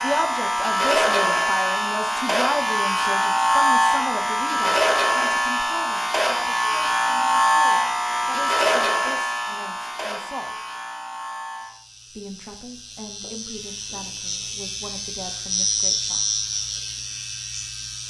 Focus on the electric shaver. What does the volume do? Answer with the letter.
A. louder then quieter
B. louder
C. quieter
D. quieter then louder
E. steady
D.